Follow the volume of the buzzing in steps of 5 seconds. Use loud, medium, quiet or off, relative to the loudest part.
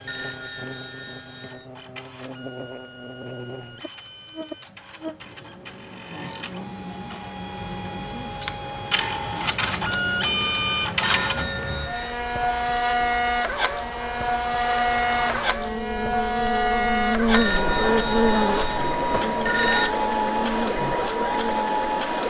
quiet, quiet, medium, loud, medium.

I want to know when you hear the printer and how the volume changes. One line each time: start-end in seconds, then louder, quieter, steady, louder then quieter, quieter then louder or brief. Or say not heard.
0.0-22.2 louder.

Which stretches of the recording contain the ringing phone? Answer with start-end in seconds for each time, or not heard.
0.1-1.7, 11.0-12.2, 17.3-19.9.